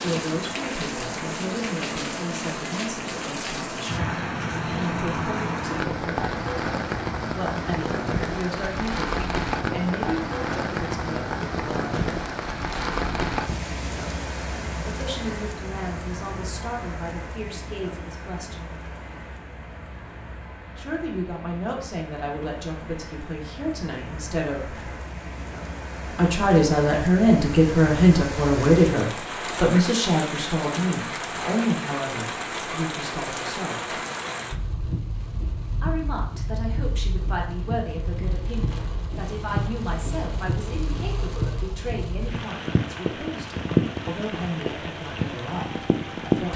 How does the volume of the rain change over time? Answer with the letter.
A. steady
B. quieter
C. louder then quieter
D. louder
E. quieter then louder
E.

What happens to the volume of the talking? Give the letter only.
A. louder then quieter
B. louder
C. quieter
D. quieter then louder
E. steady
A.